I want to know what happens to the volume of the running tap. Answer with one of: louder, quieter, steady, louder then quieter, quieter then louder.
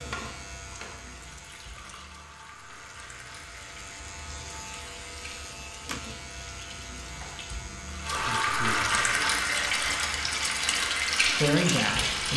louder.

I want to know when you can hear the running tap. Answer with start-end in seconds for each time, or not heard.
0.0-12.3.